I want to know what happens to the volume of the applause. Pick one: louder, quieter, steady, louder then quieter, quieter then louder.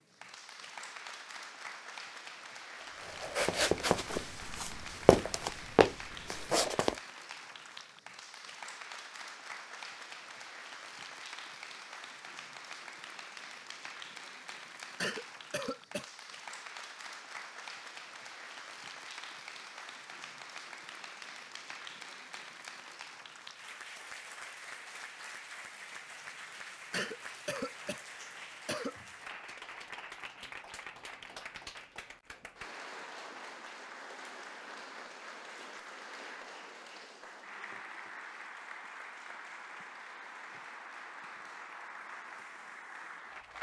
steady.